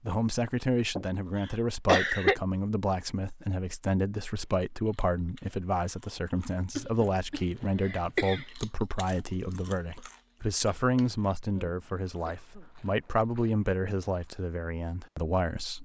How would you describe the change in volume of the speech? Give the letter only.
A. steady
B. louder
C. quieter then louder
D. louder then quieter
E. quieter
A.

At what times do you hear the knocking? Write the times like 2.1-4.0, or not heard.
not heard.